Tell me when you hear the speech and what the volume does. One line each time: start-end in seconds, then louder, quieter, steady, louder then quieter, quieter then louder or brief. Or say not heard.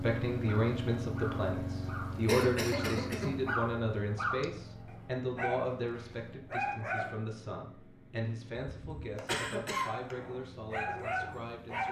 0.0-11.8 quieter.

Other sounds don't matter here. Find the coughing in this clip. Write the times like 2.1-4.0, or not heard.
2.2-3.4, 8.7-10.2.